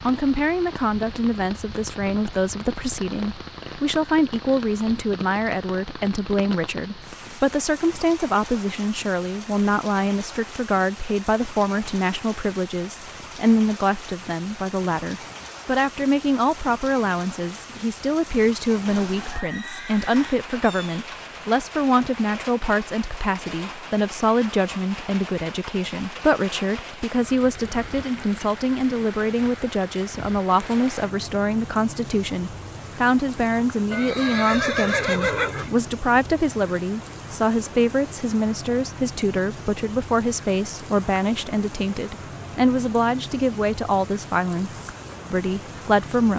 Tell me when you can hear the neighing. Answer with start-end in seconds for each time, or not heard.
18.9-20.5, 33.9-35.7.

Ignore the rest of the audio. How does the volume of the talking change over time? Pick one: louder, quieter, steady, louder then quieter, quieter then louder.
steady.